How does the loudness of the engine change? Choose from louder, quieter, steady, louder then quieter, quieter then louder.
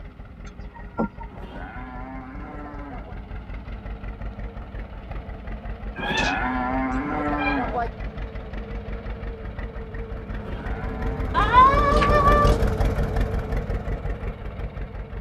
louder.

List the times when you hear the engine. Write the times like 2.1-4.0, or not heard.
0.0-15.1.